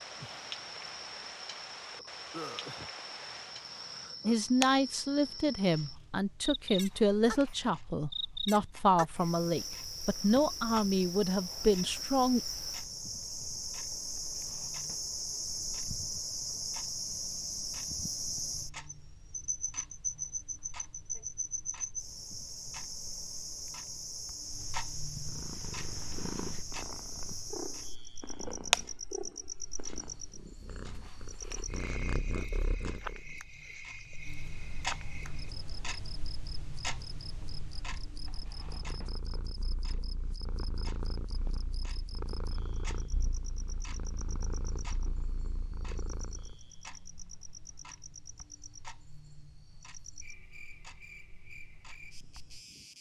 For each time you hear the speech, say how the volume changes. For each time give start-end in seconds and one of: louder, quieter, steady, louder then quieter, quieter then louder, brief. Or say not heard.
4.2-12.4 steady.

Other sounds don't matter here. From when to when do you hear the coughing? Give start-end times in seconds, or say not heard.
not heard.